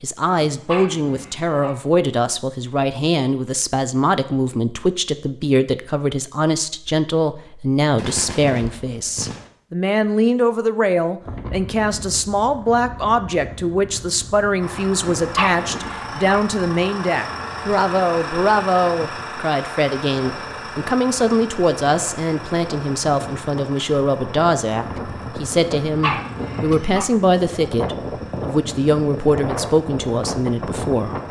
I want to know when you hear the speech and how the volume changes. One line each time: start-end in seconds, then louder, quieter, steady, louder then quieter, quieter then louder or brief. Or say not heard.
0.0-31.2 steady.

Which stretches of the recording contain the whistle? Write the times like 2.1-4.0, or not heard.
not heard.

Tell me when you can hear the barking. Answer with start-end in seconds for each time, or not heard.
0.5-1.8, 15.2-16.4, 25.9-27.1.